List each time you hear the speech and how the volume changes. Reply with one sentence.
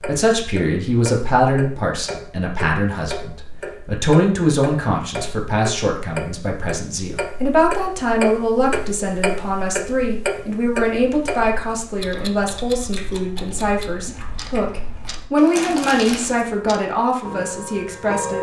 The speech can be heard from 0.0 to 18.3 s, at a steady volume.